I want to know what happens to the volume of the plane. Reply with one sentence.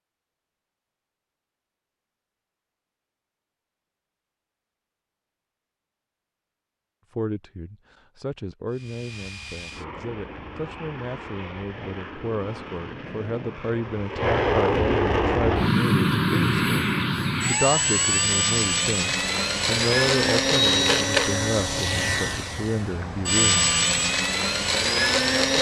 The volume of the plane goes up.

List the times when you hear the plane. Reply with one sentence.
You can hear the plane from 8.7 to 25.5 s.